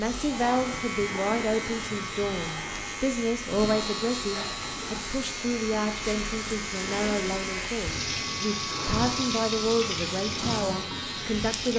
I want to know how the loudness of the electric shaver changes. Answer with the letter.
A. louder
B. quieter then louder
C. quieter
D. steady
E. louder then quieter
D.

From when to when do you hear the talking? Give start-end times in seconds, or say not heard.
0.0-11.7.